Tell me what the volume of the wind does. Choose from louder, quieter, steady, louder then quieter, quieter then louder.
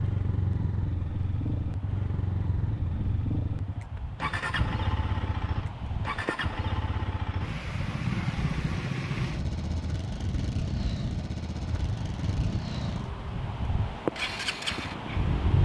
louder.